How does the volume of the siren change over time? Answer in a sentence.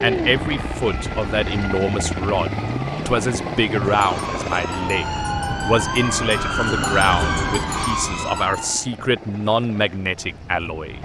The loudness of the siren goes up.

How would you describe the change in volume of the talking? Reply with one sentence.
The loudness of the talking stays about the same.